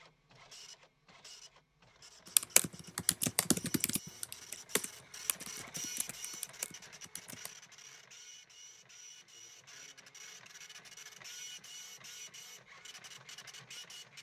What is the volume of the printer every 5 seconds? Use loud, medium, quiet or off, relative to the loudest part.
medium, loud, loud.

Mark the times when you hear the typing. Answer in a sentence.
You can hear the typing from 2.4 to 7.5 s.